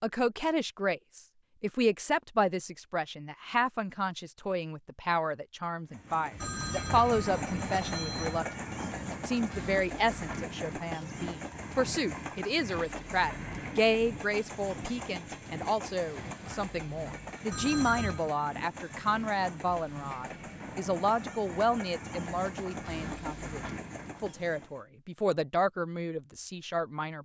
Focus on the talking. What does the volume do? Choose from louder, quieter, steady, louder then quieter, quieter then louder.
steady.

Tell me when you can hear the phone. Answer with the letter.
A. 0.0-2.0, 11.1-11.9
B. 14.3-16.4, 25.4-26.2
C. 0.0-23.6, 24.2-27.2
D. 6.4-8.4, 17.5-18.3
D.